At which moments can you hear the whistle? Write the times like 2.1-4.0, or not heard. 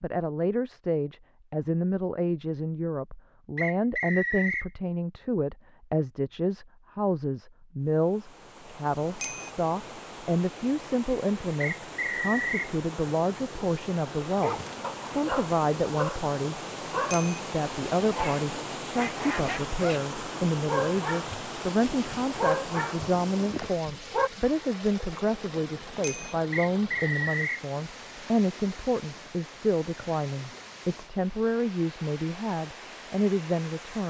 3.5-4.7, 11.6-12.7, 26.5-27.6.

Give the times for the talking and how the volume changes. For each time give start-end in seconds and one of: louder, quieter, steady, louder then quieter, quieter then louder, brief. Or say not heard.
0.0-34.0 steady.